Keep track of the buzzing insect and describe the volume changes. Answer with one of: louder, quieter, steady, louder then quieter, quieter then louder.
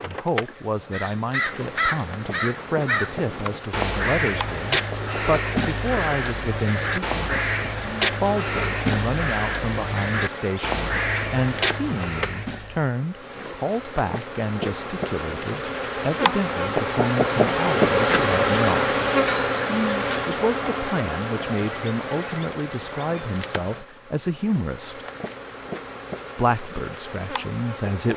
louder then quieter.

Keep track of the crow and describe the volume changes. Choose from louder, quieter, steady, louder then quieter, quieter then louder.
steady.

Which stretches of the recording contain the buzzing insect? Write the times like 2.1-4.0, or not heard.
0.0-28.1.